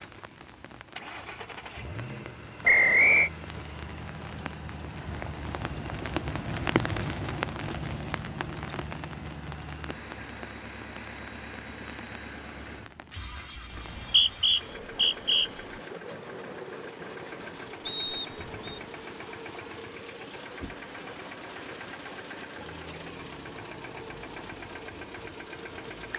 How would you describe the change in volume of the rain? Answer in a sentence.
The volume of the rain goes up, then down.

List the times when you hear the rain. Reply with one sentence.
The rain can be heard from 0.0 to 26.1 s.